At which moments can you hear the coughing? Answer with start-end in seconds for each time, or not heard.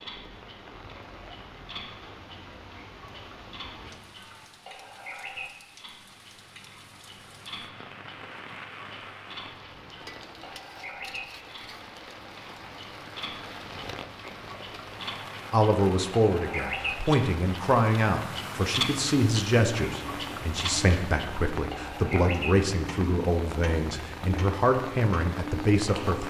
not heard.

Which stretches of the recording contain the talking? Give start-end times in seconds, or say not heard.
15.5-26.2.